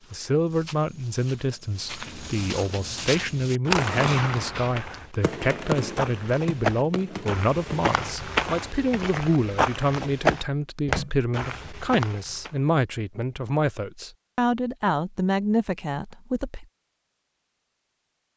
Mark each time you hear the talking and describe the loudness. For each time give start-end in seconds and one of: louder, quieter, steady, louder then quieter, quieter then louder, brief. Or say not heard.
0.1-16.6 steady.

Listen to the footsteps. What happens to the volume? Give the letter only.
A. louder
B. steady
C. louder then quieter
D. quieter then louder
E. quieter
A.